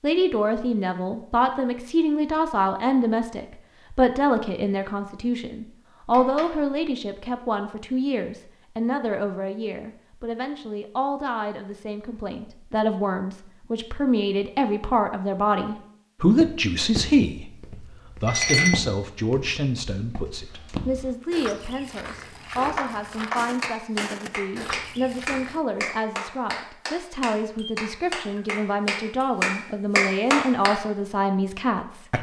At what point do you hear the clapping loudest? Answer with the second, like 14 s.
30 s.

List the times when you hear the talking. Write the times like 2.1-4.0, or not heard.
0.0-32.1.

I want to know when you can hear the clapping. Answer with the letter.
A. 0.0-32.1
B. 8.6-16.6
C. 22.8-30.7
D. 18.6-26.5
C.